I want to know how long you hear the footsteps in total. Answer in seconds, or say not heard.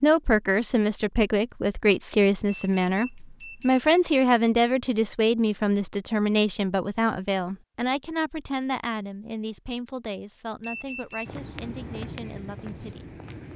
2 s.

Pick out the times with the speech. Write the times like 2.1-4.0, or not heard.
0.0-13.2.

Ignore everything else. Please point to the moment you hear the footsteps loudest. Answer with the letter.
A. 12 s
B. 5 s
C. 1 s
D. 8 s
A.